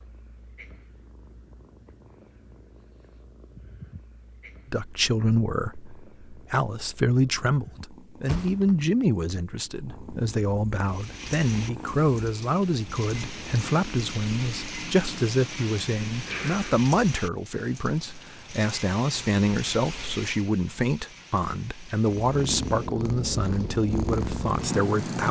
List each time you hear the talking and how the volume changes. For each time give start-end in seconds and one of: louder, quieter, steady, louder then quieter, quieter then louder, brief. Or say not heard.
4.7-25.2 steady.